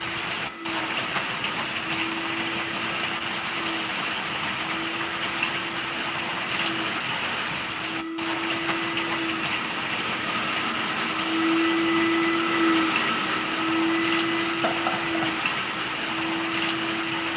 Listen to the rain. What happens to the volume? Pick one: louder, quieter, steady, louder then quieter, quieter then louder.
steady.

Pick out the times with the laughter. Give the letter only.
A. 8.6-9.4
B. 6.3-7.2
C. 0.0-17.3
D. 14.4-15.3
D.